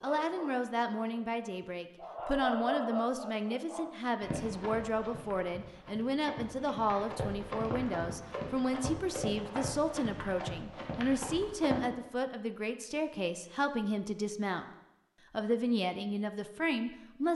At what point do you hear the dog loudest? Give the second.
3 s.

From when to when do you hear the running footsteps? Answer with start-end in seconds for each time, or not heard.
4.2-11.8.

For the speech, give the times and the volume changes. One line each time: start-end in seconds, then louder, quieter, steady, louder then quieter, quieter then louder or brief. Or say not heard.
0.0-14.7 steady
15.3-17.3 brief.